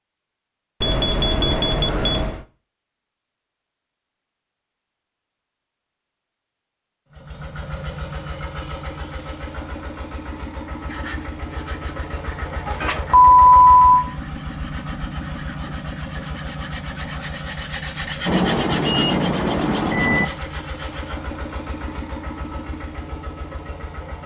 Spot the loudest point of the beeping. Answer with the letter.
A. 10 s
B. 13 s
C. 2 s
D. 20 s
B.